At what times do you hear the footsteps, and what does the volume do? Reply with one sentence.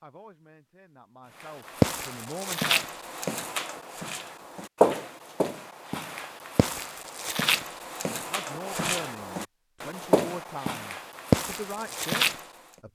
The footsteps can be heard from 1.4 to 12.4 s, getting quieter then louder.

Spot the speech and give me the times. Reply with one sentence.
You can hear the speech from 0.0 to 2.9 s and from 8.1 to 12.9 s.